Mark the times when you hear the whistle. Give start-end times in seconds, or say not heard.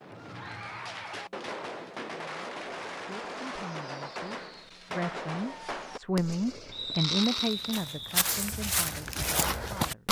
6.7-8.2.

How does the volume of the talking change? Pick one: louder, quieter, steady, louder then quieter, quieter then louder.
louder then quieter.